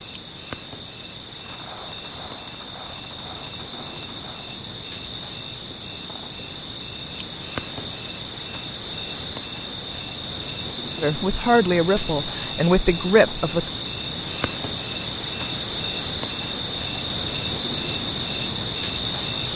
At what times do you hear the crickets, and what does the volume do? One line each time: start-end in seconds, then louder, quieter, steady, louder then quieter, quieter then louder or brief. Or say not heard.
0.0-19.5 louder.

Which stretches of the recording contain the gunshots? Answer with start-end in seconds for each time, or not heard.
1.4-4.5.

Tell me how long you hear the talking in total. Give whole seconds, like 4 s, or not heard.
3 s.